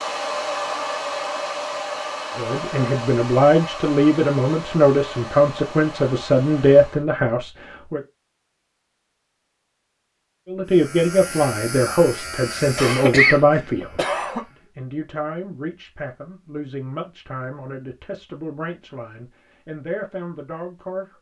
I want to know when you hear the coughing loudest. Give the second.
13 s.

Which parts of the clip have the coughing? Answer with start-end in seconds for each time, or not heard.
12.8-14.4.